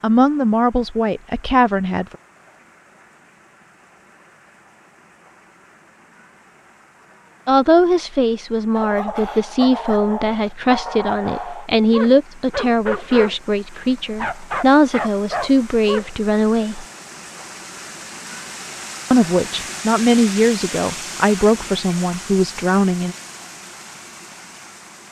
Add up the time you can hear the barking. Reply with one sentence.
The barking can be heard for 7 seconds in total.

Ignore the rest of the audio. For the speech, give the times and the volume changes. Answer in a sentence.
The speech can be heard briefly from 0.0 to 2.1 s; from 7.5 to 16.9 s, at a steady volume; and from 19.1 to 23.1 s, at a steady volume.